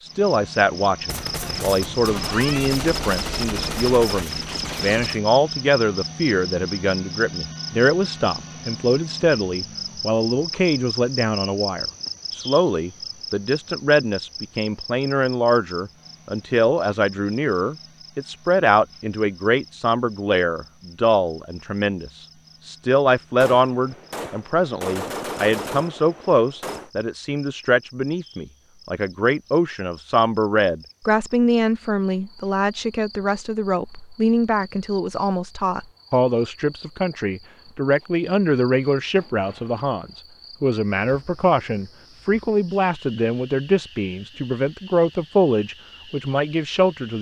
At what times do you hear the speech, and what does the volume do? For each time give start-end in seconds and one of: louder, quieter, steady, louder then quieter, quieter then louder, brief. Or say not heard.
0.0-47.1 steady.